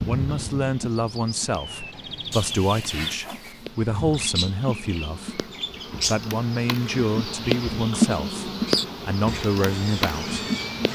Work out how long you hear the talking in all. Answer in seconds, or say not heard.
10 s.